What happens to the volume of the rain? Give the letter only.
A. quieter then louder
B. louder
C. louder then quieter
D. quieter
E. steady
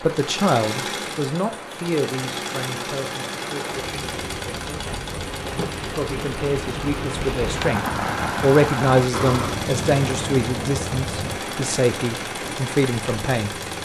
C.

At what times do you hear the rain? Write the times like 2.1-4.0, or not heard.
0.0-13.7.